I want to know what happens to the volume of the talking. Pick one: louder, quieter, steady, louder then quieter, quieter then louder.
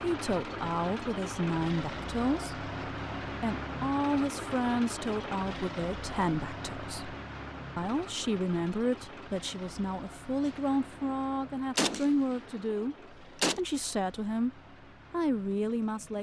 steady.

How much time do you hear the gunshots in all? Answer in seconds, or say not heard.
3 s.